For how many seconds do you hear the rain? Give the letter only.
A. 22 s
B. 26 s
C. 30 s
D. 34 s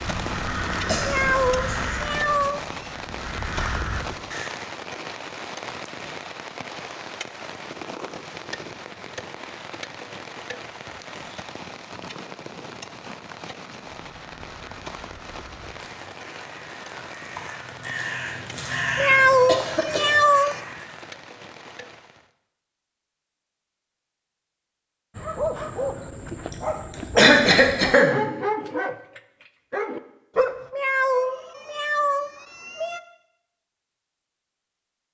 A.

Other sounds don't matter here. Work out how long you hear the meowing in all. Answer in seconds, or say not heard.
6 s.